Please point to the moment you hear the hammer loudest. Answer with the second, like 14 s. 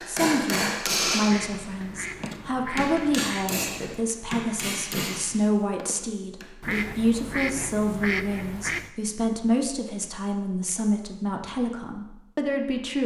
1 s.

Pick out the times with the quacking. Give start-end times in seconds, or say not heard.
1.2-4.1, 6.6-8.9.